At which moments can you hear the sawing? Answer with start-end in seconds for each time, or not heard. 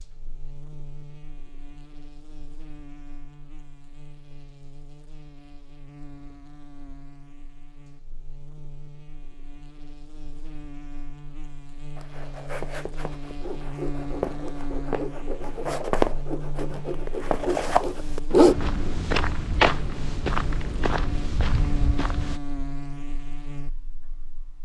13.1-18.6.